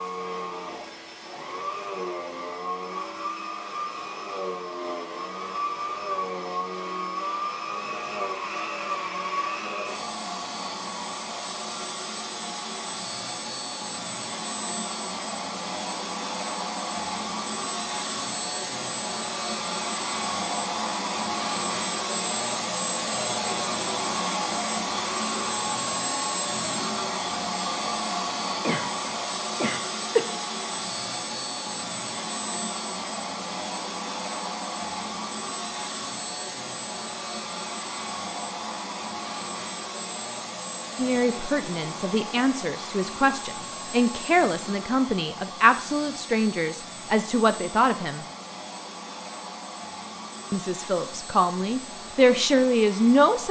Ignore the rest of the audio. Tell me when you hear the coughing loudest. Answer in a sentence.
The loudest moment of the coughing is at 30 seconds.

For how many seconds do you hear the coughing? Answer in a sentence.
The coughing can be heard for 2 seconds in total.